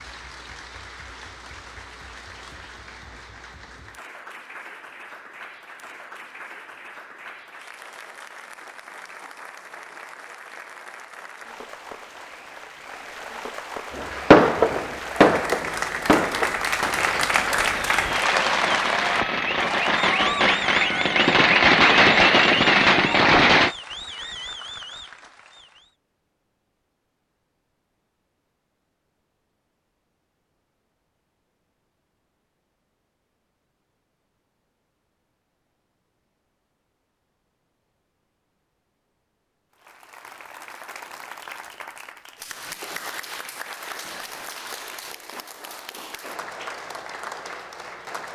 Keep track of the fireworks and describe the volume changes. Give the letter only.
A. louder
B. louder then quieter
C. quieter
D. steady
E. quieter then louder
E.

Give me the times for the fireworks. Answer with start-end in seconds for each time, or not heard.
13.9-23.8.